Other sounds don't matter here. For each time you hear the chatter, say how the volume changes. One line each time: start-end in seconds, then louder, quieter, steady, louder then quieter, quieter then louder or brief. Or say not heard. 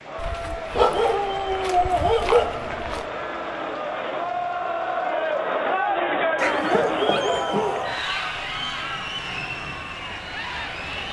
0.0-11.0 louder then quieter.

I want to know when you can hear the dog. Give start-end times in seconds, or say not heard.
0.1-3.0, 6.4-8.0.